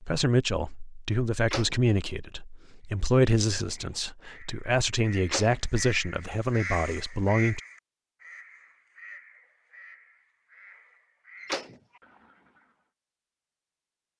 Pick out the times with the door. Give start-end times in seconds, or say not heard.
1.4-1.8, 5.2-5.8, 11.3-12.0.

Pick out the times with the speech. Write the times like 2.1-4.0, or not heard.
0.0-7.6.